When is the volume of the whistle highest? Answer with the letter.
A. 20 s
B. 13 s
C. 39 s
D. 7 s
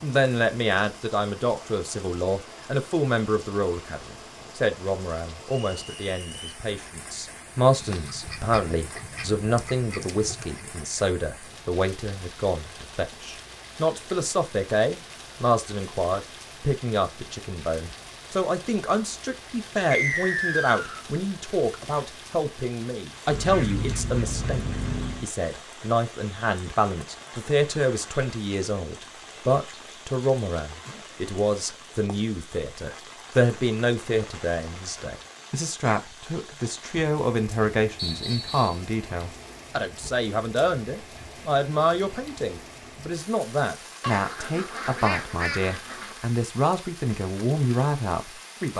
A.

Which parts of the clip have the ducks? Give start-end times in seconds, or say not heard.
7.8-10.6, 23.3-25.3, 44.0-46.2.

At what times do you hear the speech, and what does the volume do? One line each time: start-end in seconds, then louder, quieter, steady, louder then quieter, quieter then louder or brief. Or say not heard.
0.0-48.7 steady.